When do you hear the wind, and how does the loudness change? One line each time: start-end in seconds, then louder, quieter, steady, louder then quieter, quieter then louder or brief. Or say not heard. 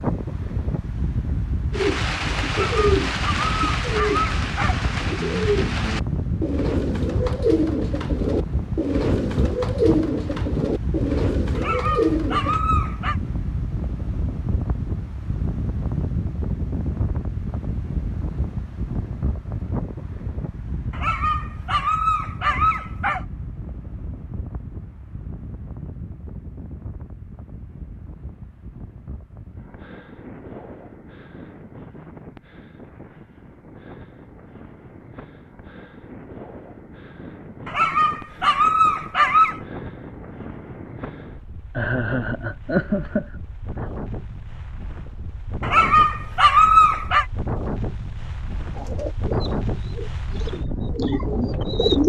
0.0-52.0 quieter then louder.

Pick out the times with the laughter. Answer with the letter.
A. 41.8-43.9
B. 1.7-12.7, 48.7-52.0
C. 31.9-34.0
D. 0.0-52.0
A.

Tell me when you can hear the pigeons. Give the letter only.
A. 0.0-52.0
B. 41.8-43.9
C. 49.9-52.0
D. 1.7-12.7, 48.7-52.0
D.